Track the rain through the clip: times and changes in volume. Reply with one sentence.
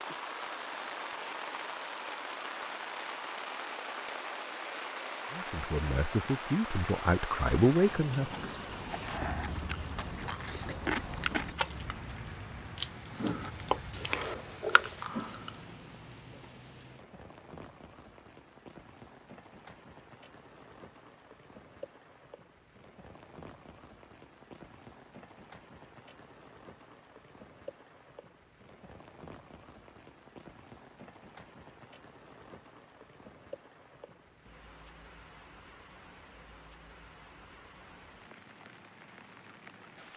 The rain can be heard from 0.0 to 40.1 s, getting quieter.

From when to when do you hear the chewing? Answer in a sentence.
The chewing can be heard from 8.2 to 15.5 s.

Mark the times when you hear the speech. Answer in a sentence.
You can hear the speech from 5.3 to 8.3 s.